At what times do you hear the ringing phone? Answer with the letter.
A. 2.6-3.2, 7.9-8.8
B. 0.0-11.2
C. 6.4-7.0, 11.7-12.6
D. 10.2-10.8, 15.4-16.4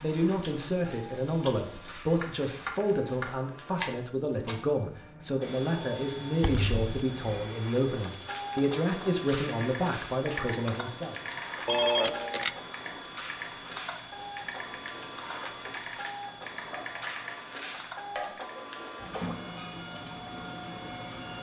C.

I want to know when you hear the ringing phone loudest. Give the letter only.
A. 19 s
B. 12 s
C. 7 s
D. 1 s
B.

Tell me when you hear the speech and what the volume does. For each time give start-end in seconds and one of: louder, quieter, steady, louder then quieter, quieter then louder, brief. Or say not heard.
0.0-11.2 steady.